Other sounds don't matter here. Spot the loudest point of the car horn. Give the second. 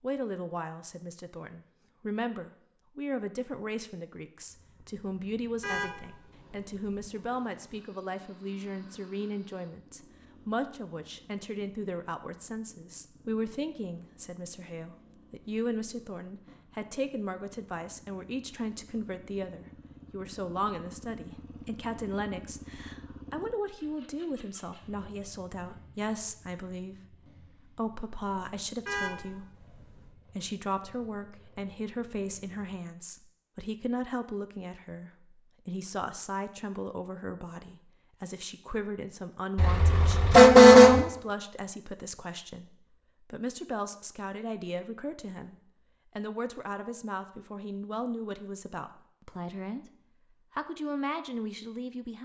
41 s.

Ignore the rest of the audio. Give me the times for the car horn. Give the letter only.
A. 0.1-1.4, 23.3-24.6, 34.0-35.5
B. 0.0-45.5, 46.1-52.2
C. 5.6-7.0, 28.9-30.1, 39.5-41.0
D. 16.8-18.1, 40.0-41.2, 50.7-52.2
C.